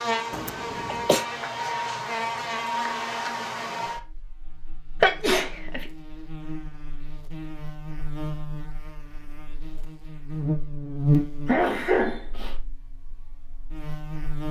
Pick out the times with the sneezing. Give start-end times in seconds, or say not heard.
0.3-1.2, 5.0-5.8, 11.4-12.6.